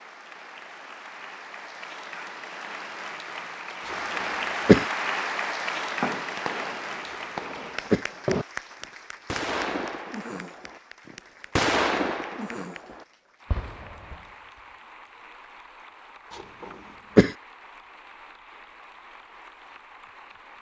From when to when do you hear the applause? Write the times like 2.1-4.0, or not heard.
0.0-20.5.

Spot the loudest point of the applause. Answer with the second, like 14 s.
5 s.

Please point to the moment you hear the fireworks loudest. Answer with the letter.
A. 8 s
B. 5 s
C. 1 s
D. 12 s
D.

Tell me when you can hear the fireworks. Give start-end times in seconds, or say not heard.
5.8-8.4, 9.2-14.2.